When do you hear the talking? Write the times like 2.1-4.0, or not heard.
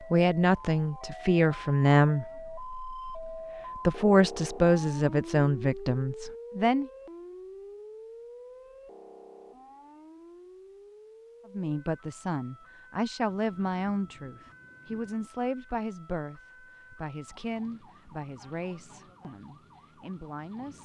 0.0-6.9, 11.5-20.7.